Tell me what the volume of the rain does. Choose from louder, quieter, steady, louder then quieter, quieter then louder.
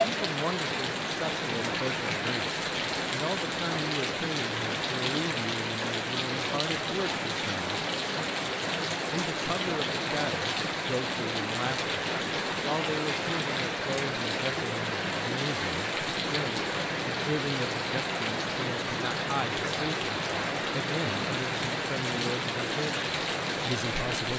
steady.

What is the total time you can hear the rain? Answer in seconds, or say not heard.
24 s.